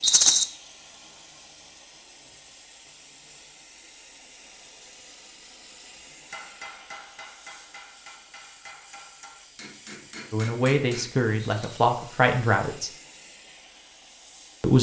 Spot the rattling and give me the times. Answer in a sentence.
You can hear the rattling from 0.0 to 0.5 s and from 11.3 to 11.8 s.